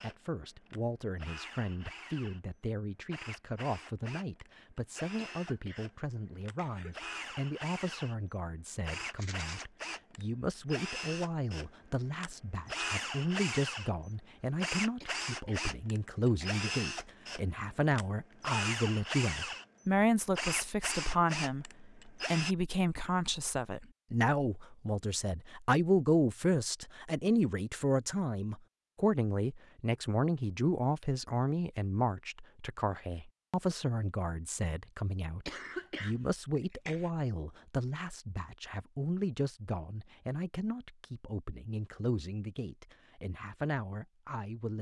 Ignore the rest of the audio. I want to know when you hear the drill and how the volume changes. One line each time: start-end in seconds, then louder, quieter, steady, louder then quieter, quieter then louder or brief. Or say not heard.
0.0-22.6 louder.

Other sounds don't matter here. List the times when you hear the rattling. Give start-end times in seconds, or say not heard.
9.1-9.7.